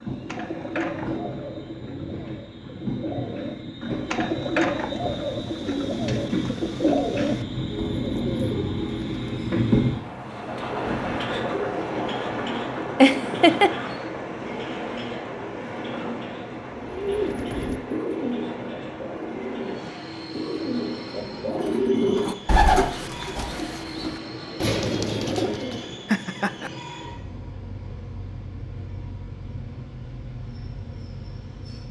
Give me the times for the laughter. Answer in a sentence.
You can hear the laughter from 13.0 to 13.7 s and from 26.1 to 26.7 s.